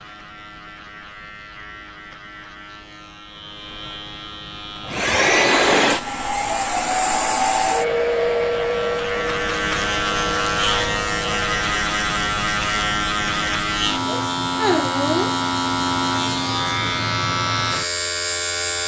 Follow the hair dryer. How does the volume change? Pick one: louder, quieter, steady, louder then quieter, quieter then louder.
quieter.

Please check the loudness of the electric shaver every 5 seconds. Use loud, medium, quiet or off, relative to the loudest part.
quiet, medium, loud, loud.